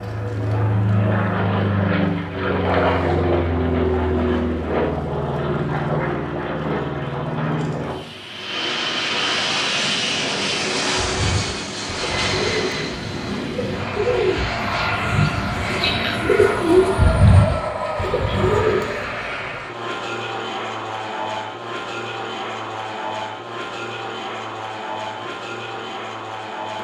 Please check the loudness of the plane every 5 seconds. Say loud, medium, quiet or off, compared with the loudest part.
loud, loud, loud, medium, medium, medium.